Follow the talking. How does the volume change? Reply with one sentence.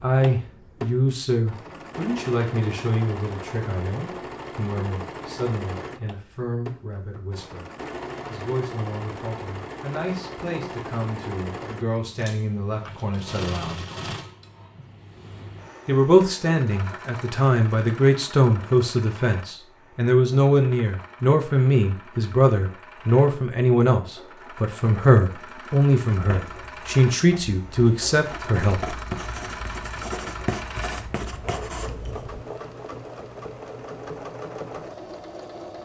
The loudness of the talking goes down, then up.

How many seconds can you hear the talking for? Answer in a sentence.
You can hear the talking for 27 seconds altogether.